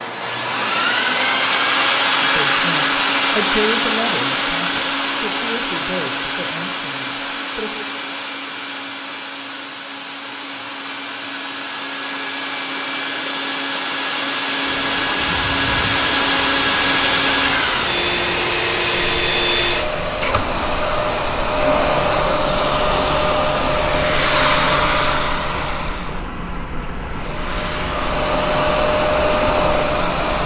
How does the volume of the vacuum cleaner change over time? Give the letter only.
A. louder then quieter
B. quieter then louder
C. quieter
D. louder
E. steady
B.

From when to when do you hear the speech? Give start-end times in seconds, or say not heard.
2.2-7.9.